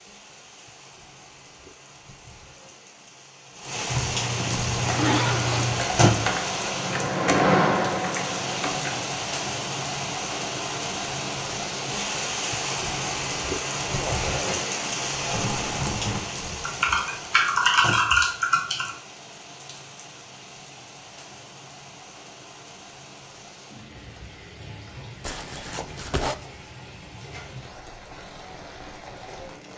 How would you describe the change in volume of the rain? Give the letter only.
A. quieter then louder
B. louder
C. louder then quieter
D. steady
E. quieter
E.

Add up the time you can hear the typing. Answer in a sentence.
You can hear the typing for 8 seconds altogether.